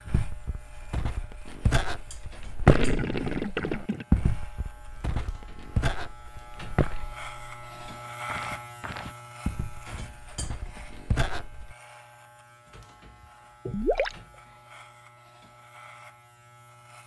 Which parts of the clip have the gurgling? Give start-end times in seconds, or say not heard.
2.6-4.0, 13.7-14.2.